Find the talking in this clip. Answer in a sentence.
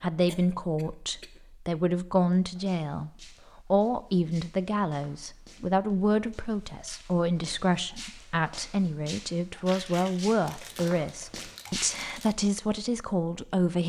You can hear the talking from 0.0 to 13.8 s.